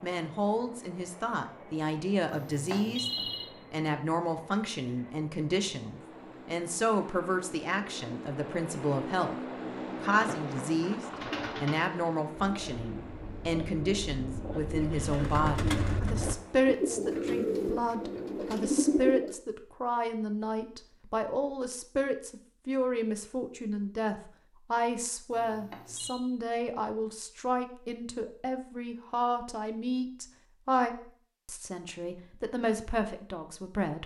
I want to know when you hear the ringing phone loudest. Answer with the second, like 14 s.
3 s.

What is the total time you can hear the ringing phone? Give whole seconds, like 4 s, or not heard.
2 s.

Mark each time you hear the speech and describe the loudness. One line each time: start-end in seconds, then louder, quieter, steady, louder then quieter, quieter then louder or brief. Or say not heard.
0.0-9.3 steady
10.0-34.0 steady.